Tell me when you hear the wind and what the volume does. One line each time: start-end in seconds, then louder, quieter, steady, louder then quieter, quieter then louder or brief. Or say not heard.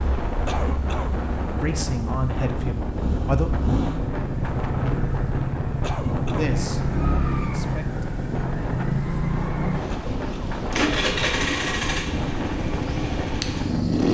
0.0-14.1 steady.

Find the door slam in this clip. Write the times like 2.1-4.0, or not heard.
not heard.